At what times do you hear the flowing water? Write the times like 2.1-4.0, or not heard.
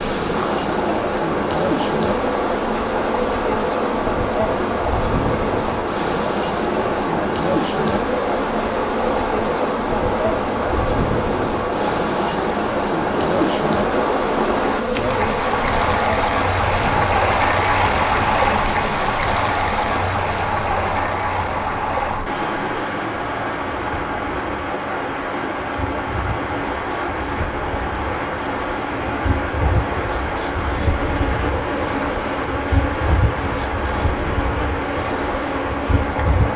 0.2-36.5.